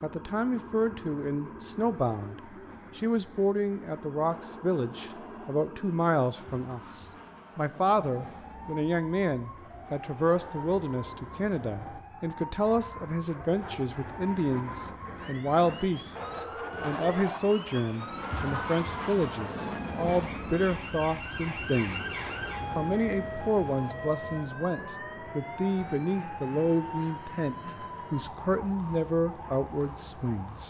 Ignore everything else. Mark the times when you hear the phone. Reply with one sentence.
You can't hear the phone here.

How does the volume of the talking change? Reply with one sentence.
The volume of the talking stays about the same.